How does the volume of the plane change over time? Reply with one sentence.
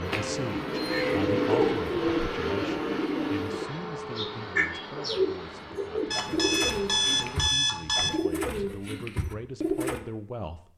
The loudness of the plane goes down.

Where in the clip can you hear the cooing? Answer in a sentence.
The cooing can be heard from 0.0 to 10.0 s.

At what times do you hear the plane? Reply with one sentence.
You can hear the plane from 0.0 to 7.5 s.